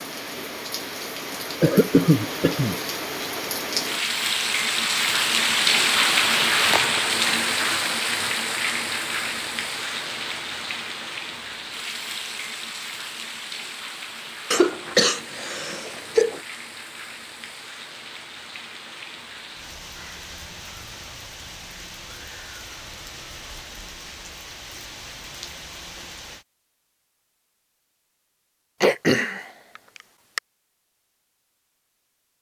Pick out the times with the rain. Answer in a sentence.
You can hear the rain from 0.0 to 26.4 s.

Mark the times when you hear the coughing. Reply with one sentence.
The coughing can be heard from 1.6 to 2.8 s, from 14.5 to 16.4 s and from 28.8 to 29.4 s.